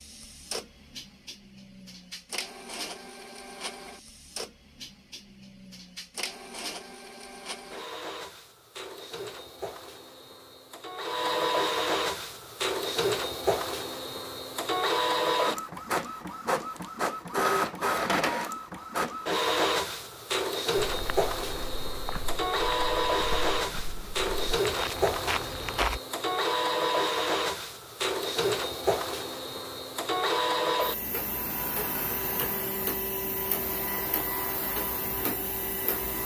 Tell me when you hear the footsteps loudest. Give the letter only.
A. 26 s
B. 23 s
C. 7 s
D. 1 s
A.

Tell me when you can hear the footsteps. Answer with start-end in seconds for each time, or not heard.
20.9-26.0.